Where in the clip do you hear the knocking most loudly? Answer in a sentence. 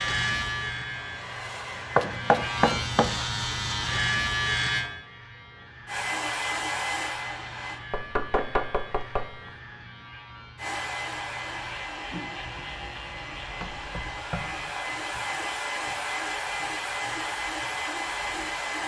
The loudest moment of the knocking is at 2 seconds.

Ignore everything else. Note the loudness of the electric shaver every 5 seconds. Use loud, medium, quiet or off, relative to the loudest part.
loud, quiet, quiet, quiet.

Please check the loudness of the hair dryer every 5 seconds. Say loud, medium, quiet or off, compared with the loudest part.
medium, loud, medium, loud.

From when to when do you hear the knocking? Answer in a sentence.
The knocking can be heard from 1.9 to 3.1 s, from 7.9 to 9.5 s and from 13.6 to 14.7 s.